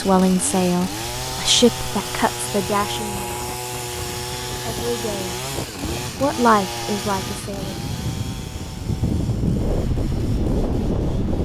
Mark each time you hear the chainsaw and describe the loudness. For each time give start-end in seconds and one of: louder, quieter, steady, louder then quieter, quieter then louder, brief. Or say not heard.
0.0-11.4 quieter.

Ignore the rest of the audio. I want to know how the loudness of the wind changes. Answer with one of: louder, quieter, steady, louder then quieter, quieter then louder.
louder.